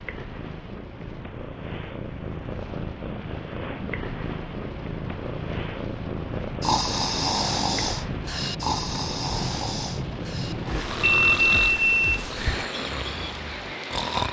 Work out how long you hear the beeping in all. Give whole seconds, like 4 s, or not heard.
2 s.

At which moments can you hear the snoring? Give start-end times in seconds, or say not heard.
6.6-14.2.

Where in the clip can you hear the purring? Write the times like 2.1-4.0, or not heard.
0.0-12.7.